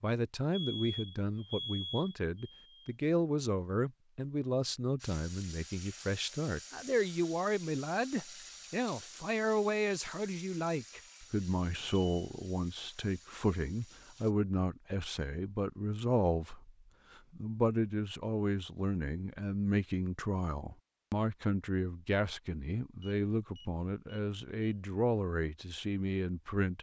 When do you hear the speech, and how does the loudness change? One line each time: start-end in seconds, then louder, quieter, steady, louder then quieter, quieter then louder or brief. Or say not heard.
0.0-16.7 steady
17.4-26.7 steady.